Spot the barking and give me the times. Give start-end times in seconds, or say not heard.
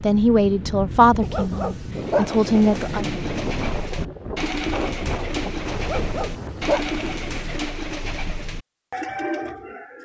1.2-3.0, 5.8-7.6.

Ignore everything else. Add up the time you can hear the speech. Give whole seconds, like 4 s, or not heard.
3 s.